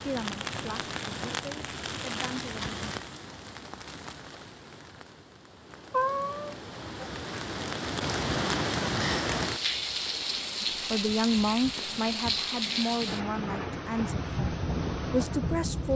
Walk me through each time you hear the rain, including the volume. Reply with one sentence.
The rain can be heard from 0.0 to 15.9 s, getting quieter then louder.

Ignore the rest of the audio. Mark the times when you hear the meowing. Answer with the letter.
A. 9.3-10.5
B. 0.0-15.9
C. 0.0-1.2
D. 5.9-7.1
D.